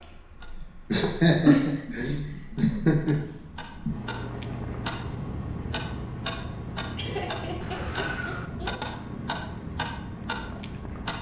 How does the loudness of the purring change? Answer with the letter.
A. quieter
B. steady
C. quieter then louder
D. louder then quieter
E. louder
A.